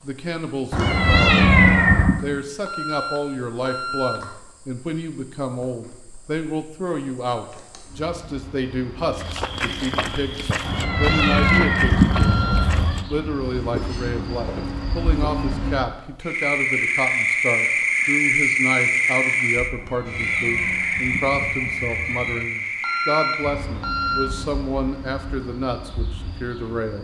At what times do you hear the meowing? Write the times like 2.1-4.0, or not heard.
0.7-2.2, 10.7-13.0, 19.8-22.5.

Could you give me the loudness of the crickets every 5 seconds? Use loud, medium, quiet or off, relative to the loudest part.
quiet, quiet, quiet, loud, medium, quiet.